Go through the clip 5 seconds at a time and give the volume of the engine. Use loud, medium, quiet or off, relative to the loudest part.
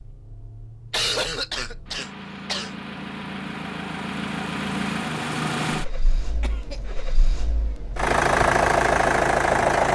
medium, loud.